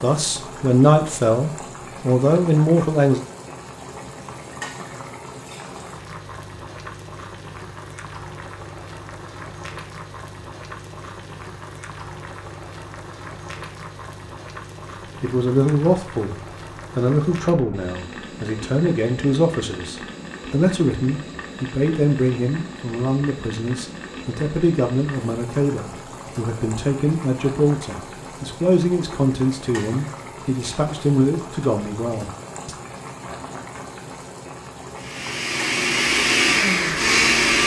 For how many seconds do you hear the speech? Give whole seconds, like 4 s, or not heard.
21 s.